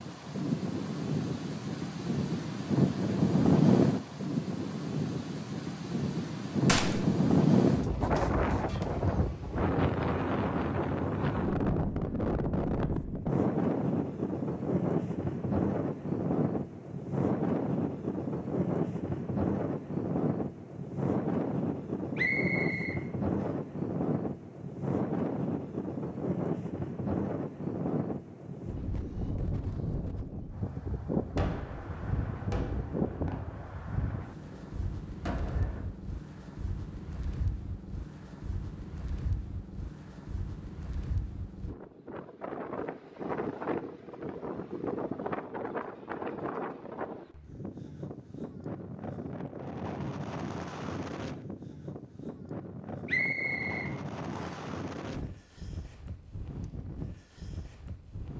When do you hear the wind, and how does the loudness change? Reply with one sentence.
You can hear the wind from 0.0 to 58.3 s, getting quieter.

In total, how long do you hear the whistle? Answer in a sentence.
The whistle can be heard for 3 seconds in total.